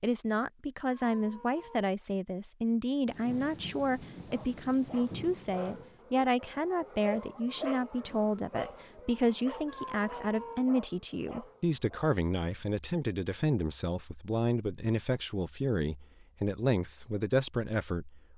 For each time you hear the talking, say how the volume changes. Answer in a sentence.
You can hear the talking from 0.0 to 18.3 s, at a steady volume.